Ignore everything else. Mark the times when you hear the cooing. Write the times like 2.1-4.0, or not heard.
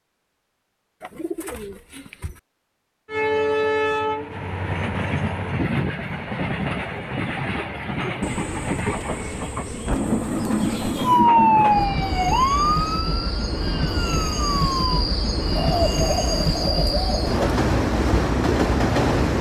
1.0-2.4, 8.2-11.1, 15.6-17.4.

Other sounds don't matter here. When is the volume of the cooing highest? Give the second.
16 s.